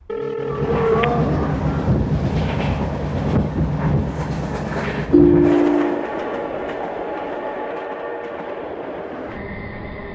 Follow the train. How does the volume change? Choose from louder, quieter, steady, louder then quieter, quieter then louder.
quieter.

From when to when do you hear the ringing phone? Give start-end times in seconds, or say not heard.
0.1-1.2, 5.1-6.1.